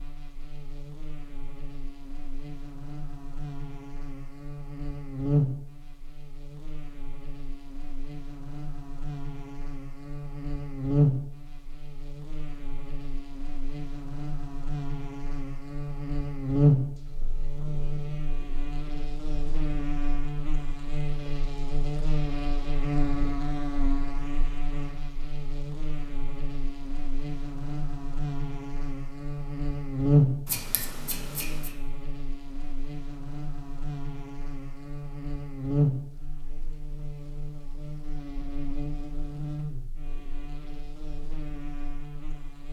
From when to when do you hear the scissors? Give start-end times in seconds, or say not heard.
30.4-31.8.